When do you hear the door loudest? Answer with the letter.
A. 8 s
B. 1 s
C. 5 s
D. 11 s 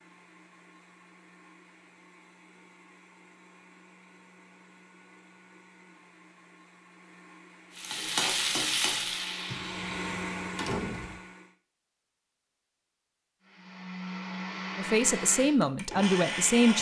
D.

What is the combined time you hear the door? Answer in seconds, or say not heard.
2 s.